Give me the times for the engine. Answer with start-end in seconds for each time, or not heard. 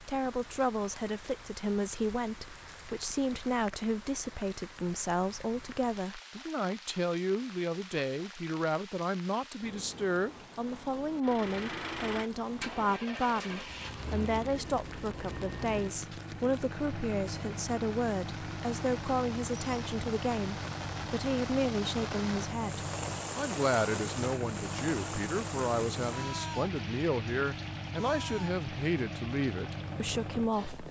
11.2-30.8.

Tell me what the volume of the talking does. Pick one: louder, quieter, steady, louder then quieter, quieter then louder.
steady.